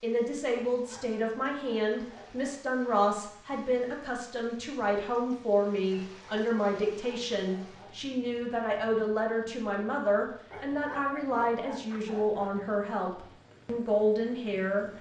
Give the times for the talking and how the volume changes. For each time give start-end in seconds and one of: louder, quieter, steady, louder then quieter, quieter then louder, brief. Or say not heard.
0.0-14.8 steady.